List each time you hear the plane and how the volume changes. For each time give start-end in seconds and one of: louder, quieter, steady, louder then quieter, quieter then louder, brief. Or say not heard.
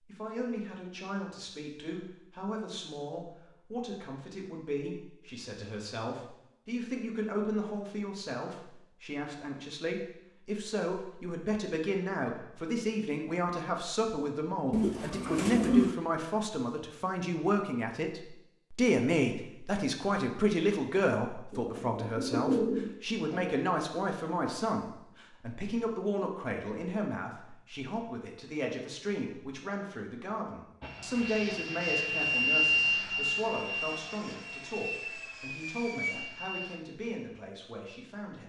30.8-36.8 louder then quieter.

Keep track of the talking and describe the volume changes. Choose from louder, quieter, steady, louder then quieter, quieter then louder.
louder then quieter.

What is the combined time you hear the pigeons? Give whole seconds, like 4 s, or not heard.
3 s.